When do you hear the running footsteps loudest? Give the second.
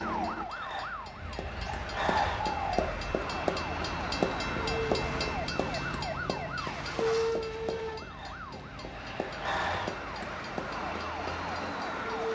4 s.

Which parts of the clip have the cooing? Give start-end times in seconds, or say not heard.
1.1-3.1.